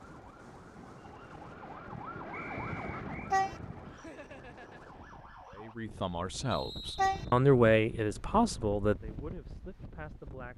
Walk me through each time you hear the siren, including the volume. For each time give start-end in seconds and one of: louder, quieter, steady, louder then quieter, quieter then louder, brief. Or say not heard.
0.0-5.8 louder then quieter.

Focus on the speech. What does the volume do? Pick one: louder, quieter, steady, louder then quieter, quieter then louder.
louder then quieter.